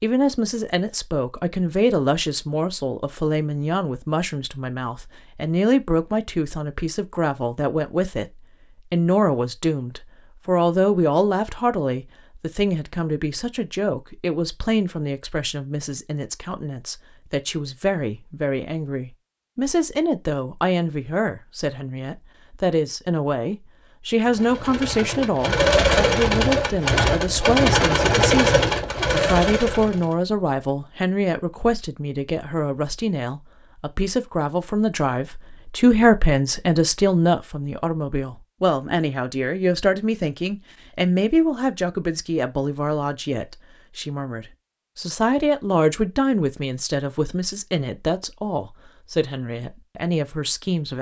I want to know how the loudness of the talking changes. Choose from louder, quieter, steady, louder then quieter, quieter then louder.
steady.